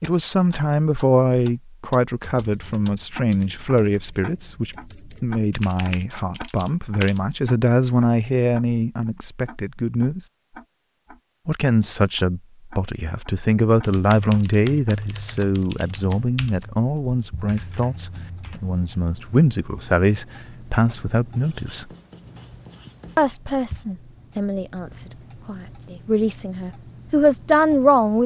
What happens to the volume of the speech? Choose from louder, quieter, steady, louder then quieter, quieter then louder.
steady.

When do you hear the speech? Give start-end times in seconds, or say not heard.
0.0-10.2, 11.4-21.9, 23.1-28.2.